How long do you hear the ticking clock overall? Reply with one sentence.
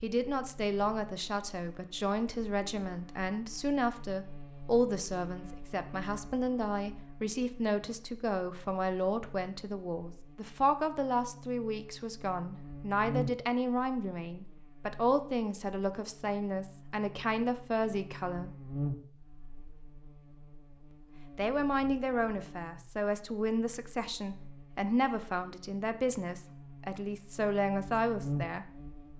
You can't hear the ticking clock here.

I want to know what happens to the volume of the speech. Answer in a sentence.
The loudness of the speech stays about the same.